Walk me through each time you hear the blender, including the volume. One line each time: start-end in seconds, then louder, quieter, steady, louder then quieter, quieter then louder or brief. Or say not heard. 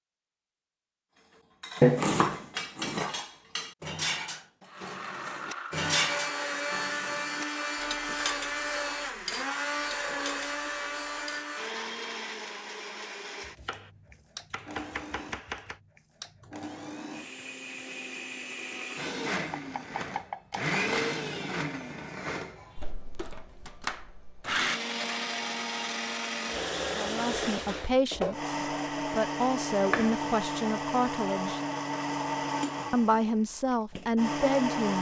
4.7-34.9 quieter then louder.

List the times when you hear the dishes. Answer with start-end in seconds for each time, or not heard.
1.3-11.7.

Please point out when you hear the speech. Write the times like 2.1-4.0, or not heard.
26.9-31.6, 32.9-34.9.